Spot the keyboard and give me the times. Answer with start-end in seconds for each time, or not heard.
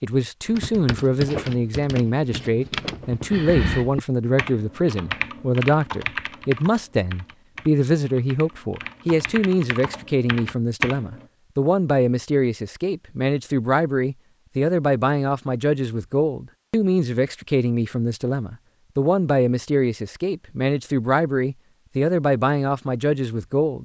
0.5-11.2.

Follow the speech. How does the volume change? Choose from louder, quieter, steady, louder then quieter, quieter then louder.
steady.